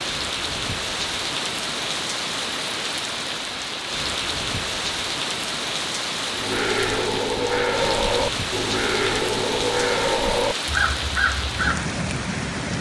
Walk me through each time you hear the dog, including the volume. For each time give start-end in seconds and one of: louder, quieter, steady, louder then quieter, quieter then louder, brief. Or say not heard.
not heard.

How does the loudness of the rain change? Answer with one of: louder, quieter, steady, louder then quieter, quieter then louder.
steady.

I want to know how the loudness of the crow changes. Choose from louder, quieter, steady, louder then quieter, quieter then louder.
steady.